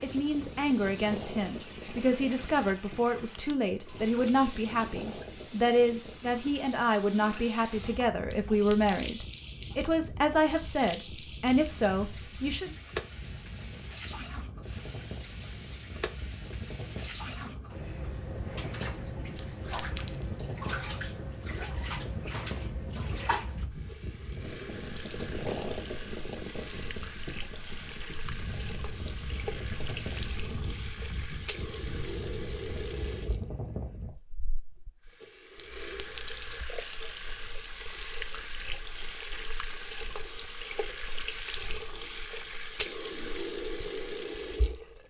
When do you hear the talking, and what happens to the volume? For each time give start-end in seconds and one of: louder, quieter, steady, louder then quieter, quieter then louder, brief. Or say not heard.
0.0-12.8 steady.